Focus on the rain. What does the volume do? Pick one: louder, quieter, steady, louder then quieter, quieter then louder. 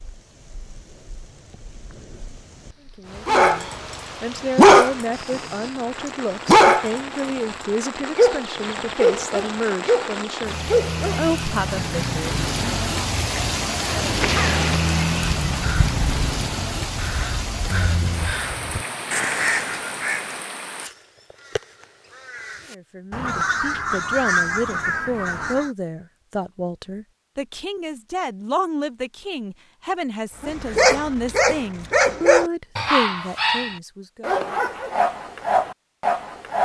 louder then quieter.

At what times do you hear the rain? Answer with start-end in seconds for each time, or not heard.
0.0-20.9.